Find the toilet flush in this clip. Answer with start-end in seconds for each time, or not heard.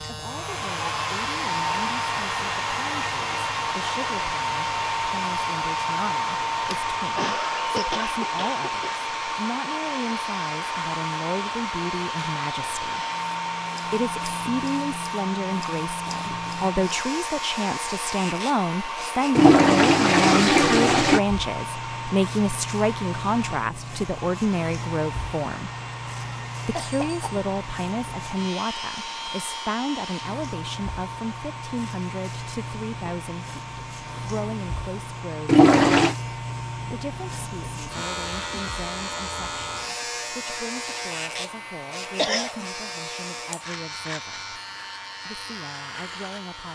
19.4-21.2, 35.5-36.1.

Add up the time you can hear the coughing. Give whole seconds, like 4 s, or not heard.
3 s.